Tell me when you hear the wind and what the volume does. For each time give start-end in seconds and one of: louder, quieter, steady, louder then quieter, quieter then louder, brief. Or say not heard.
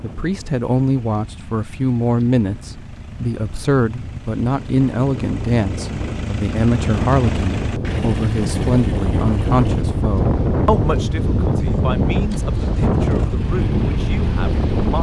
0.0-14.9 louder.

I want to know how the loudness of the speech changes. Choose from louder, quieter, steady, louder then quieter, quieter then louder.
quieter.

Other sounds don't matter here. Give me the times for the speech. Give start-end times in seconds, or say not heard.
0.0-14.9.